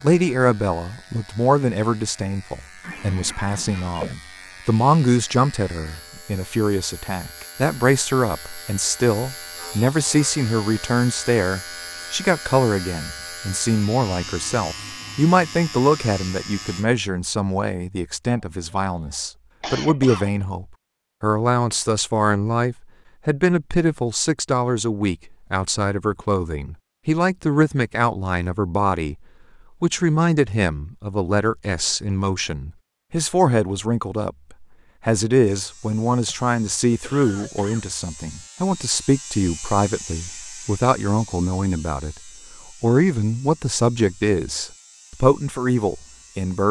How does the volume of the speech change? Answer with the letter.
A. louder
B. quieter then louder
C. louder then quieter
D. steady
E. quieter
D.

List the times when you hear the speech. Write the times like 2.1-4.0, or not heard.
0.0-29.1, 29.8-46.6.